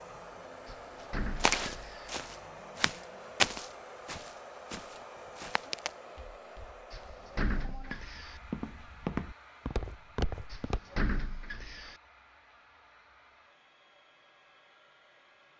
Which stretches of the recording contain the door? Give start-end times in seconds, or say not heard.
0.7-2.1, 6.9-8.3, 10.5-11.9.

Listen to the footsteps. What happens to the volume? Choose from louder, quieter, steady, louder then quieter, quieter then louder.
quieter then louder.